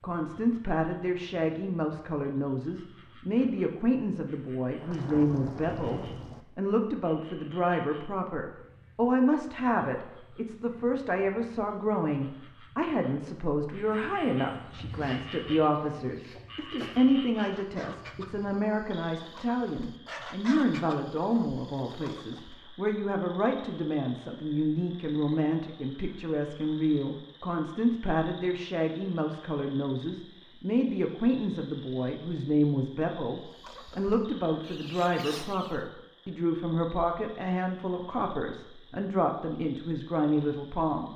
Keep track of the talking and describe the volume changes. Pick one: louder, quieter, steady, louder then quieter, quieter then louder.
steady.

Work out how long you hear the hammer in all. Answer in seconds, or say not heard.
not heard.